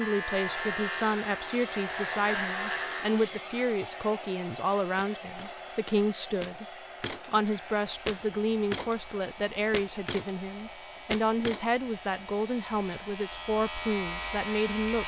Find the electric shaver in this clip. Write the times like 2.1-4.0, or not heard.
0.0-3.2, 7.5-15.0.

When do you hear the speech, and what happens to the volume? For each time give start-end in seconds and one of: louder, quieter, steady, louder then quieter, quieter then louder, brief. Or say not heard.
0.0-15.0 steady.